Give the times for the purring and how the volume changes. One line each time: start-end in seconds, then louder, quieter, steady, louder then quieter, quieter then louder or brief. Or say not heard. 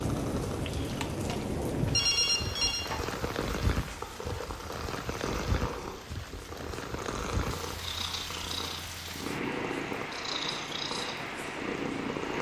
0.0-12.3 louder.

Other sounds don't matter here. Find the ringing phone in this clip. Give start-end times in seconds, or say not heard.
1.9-2.9.